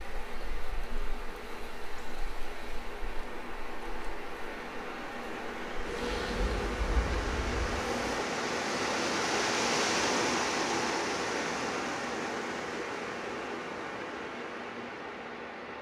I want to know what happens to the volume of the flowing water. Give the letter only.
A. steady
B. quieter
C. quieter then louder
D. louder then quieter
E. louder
D.